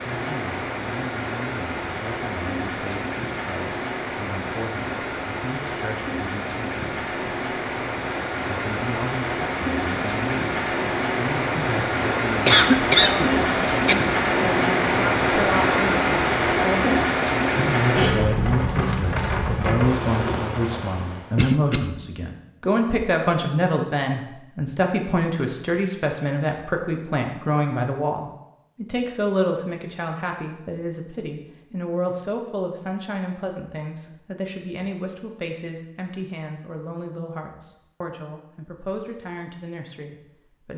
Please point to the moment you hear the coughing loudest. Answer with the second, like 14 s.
13 s.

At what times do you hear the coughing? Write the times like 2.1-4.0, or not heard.
12.4-13.9, 21.4-21.9.